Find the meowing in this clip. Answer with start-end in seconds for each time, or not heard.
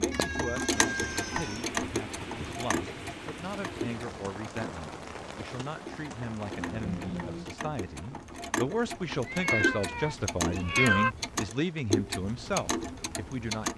0.1-1.6, 6.5-7.5, 9.2-11.1.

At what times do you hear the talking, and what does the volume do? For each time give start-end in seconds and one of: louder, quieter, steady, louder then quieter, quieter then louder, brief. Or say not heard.
0.0-13.7 louder.